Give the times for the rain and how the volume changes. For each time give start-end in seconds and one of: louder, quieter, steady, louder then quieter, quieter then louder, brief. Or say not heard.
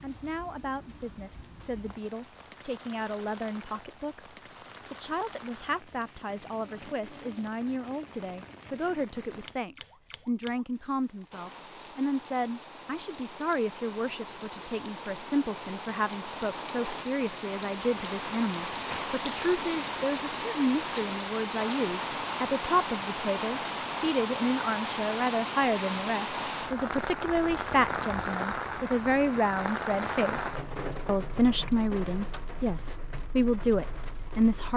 0.0-34.7 louder.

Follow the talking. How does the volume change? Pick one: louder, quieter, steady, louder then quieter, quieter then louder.
louder.